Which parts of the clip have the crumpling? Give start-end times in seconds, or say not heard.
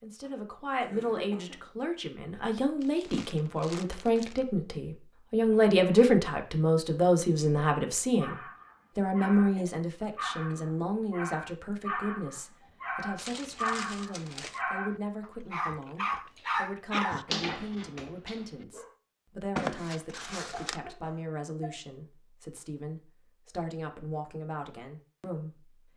2.8-4.5, 13.2-14.7, 19.6-20.8.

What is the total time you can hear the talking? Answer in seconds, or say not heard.
26 s.